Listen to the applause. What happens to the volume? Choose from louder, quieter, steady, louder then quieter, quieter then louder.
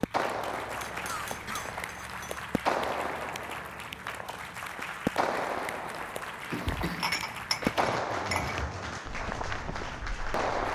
steady.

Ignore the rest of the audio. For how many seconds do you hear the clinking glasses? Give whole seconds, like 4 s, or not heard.
4 s.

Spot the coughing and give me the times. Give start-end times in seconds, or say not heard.
1.1-1.7, 6.5-7.2.